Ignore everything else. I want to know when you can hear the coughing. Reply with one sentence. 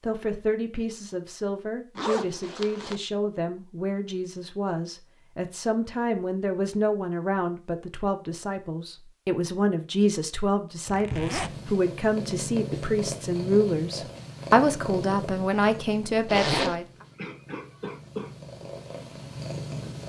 The coughing can be heard from 16.4 to 18.3 s.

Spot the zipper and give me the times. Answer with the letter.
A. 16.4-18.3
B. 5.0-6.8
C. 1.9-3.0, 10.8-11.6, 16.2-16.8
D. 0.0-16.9
C.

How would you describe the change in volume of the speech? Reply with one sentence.
The loudness of the speech goes up.